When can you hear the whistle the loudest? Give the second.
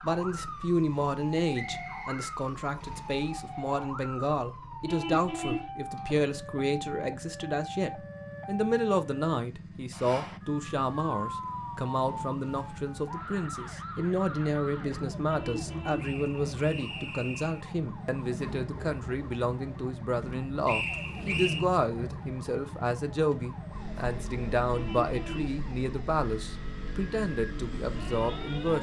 21 s.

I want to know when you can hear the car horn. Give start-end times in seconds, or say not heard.
4.8-5.7, 15.2-16.1, 24.7-25.6.